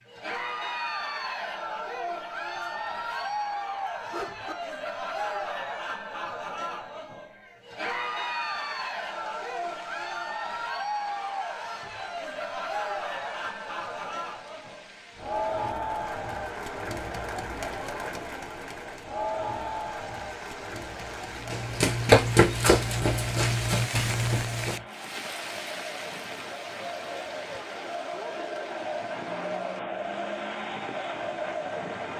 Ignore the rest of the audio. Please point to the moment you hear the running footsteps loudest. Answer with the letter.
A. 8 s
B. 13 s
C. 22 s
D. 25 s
C.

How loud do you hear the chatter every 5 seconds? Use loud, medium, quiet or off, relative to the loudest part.
loud, loud, loud, loud, medium, loud, loud.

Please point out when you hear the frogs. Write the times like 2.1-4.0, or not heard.
not heard.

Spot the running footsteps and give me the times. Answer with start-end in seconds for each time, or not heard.
21.4-24.8.